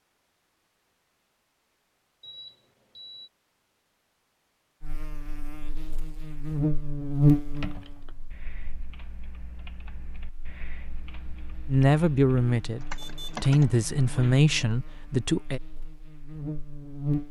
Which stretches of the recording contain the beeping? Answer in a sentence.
You can hear the beeping from 2.2 to 3.3 s and from 12.9 to 13.4 s.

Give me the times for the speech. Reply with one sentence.
You can hear the speech from 11.7 to 15.6 s.